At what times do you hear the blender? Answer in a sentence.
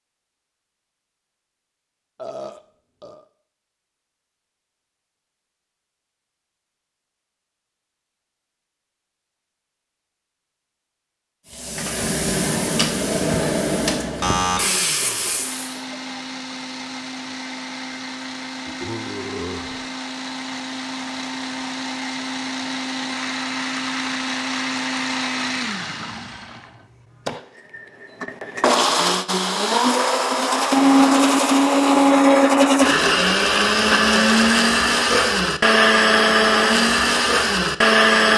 The blender can be heard from 14.5 to 38.3 s.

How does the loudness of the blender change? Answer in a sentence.
The loudness of the blender goes up.